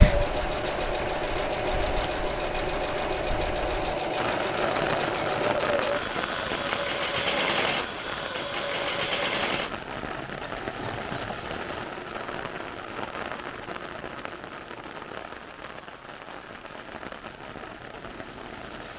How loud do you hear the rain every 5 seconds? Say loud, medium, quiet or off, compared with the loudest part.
loud, loud, loud, medium.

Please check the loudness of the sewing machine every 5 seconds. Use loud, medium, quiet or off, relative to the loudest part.
loud, loud, quiet, quiet.